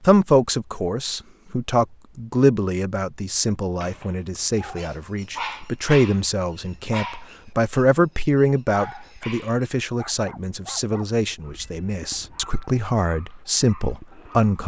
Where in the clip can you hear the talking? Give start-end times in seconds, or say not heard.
0.0-14.6.